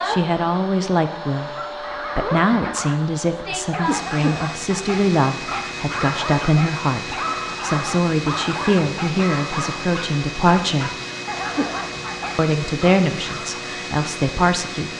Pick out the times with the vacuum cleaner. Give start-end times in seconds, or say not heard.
0.0-14.9.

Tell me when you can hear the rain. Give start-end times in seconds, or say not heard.
not heard.